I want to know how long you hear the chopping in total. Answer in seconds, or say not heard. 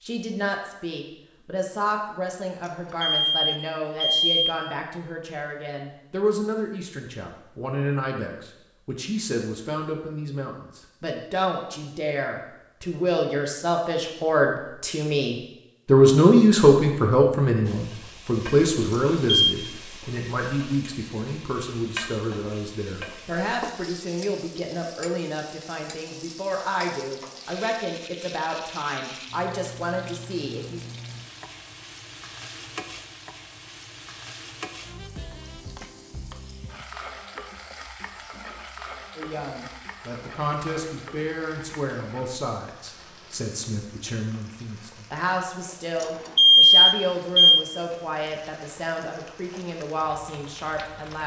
not heard.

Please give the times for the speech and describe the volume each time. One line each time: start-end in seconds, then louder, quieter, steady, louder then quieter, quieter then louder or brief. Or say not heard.
0.0-30.8 louder then quieter
39.1-51.2 steady.